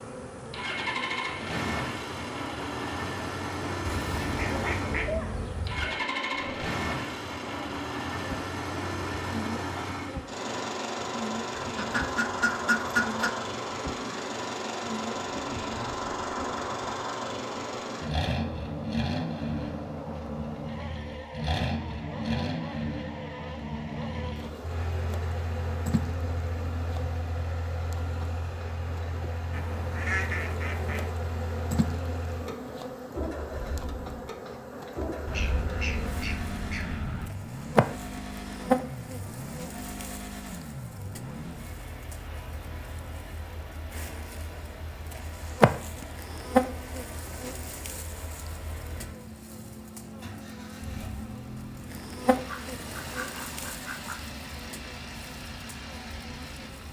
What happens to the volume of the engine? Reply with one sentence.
The volume of the engine goes down.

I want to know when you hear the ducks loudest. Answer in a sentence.
The loudest moment of the ducks is at 13 seconds.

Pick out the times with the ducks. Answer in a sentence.
You can hear the ducks from 3.9 to 5.8 s, from 11.8 to 13.3 s, from 29.5 to 31.1 s, from 35.2 to 37.3 s and from 52.3 to 54.1 s.